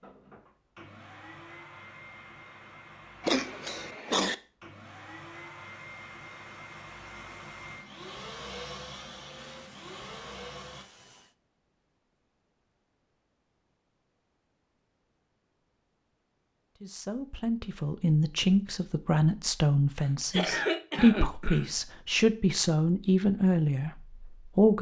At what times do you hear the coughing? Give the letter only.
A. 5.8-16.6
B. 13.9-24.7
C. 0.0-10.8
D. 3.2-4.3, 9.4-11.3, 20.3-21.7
D.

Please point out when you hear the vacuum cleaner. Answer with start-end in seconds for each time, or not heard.
0.0-10.8.